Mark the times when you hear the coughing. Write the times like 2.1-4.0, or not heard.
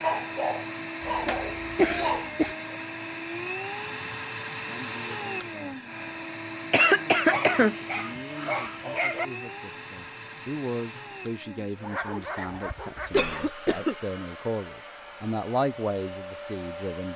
1.0-2.5, 6.7-7.8, 13.1-13.9.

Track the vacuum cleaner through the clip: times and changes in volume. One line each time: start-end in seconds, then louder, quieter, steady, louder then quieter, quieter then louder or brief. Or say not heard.
0.0-17.1 quieter.